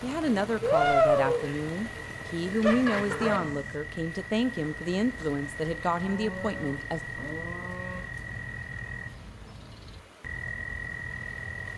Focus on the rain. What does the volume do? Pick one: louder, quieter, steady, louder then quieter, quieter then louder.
quieter.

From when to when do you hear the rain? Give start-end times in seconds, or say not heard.
0.0-11.7.